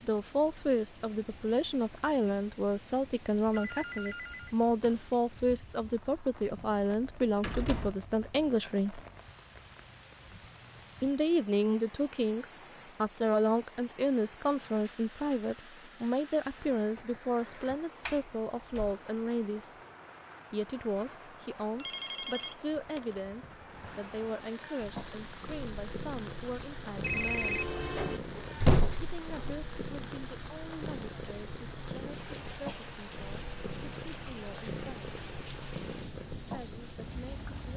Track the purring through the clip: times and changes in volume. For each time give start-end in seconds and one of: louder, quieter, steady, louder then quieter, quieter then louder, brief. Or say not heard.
24.8-37.7 steady.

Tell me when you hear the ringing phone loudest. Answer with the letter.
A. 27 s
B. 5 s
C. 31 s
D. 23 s
A.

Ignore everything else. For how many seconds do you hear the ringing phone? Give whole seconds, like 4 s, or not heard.
4 s.